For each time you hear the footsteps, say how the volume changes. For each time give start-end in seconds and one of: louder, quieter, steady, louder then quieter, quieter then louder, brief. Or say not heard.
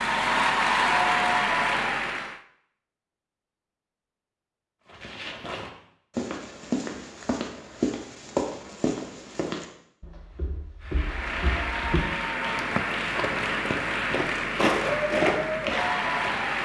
4.9-16.5 quieter then louder.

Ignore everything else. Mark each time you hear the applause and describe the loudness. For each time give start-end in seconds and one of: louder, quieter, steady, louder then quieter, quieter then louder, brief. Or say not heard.
0.0-2.4 brief
10.8-16.6 steady.